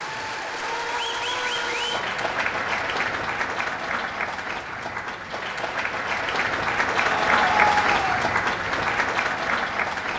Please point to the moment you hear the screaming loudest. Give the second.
8 s.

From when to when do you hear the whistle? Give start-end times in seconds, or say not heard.
not heard.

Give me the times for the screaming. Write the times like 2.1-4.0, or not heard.
0.6-2.0, 7.0-8.1.